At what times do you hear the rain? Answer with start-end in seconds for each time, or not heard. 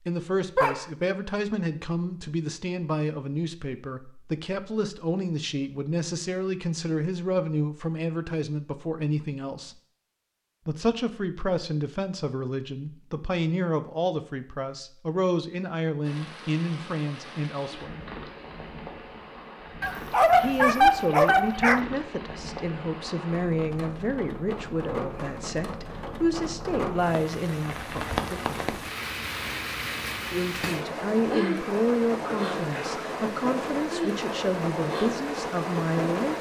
16.0-36.3.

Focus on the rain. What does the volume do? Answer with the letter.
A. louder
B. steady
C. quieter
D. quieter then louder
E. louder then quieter
A.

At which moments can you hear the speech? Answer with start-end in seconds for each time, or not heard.
0.1-9.8, 10.7-18.1, 20.4-28.8, 30.3-36.3.